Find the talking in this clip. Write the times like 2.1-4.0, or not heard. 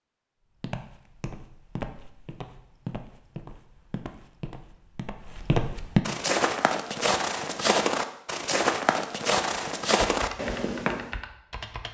not heard.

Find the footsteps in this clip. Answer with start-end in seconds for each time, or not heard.
0.6-11.1.